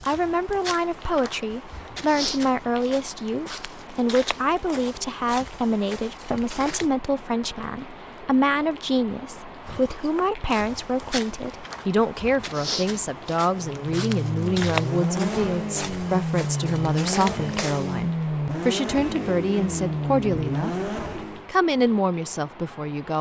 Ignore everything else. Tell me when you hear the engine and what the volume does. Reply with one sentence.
The engine can be heard from 13.7 to 21.5 s, at a steady volume.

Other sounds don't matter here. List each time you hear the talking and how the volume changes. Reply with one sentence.
You can hear the talking from 0.1 to 23.1 s, at a steady volume.